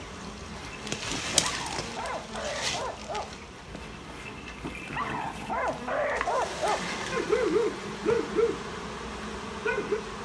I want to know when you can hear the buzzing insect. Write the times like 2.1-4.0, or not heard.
0.0-10.1.